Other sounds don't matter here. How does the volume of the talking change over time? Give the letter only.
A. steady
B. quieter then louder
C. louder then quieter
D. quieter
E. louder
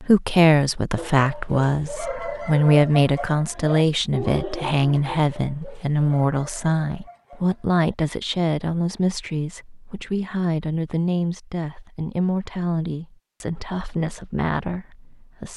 D.